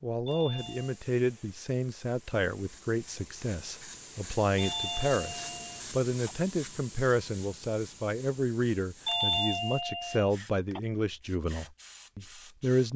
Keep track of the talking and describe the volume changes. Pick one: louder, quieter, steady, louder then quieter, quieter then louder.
steady.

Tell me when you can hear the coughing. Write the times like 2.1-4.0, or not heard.
not heard.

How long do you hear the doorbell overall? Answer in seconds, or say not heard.
4 s.